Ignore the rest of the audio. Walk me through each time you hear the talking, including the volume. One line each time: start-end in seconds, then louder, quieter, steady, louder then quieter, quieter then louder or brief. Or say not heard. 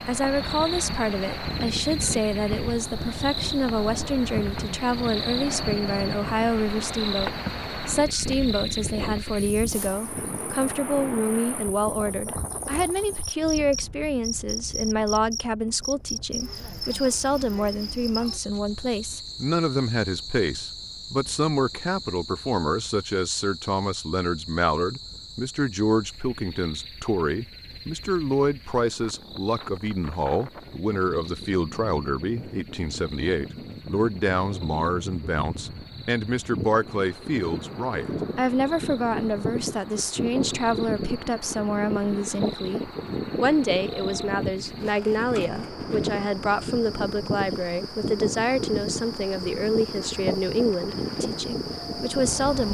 0.1-52.6 steady.